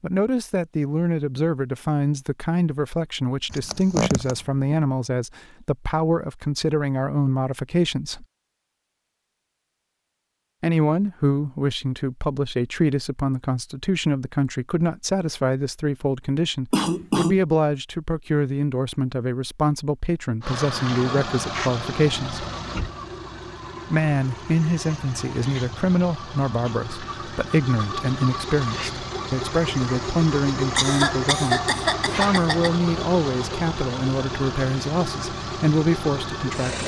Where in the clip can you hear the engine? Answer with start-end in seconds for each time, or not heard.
20.4-36.8.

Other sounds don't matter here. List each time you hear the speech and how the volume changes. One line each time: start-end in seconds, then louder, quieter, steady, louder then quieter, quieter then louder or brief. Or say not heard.
0.0-8.2 steady
10.6-22.4 steady
23.9-36.8 steady.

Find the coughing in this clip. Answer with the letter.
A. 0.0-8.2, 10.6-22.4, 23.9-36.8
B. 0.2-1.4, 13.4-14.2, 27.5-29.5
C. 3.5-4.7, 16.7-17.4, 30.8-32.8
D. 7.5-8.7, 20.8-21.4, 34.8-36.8
C.